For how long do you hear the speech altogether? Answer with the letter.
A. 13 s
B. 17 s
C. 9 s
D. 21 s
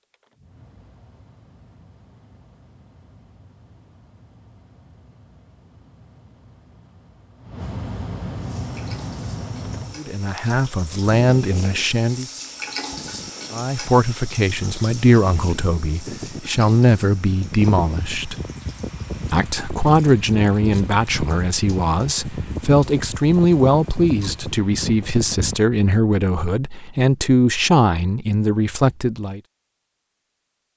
B.